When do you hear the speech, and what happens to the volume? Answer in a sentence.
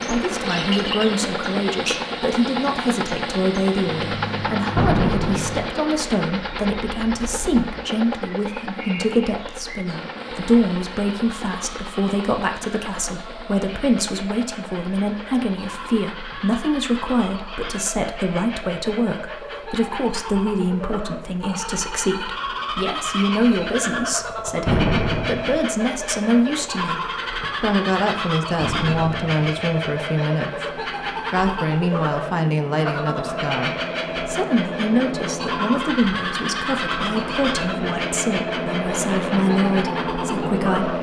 The speech can be heard from 0.1 to 40.9 s, at a steady volume.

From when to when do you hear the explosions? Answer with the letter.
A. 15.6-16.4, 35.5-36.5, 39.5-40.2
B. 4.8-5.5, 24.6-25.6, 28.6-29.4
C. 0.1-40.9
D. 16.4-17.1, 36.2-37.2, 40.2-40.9
B.